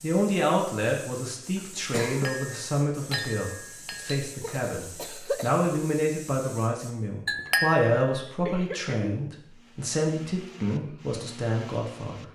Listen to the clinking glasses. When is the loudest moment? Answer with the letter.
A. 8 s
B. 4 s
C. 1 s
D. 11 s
A.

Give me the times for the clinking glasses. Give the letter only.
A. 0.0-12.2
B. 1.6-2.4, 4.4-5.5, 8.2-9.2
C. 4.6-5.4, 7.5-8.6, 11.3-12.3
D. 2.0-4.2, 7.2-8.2
D.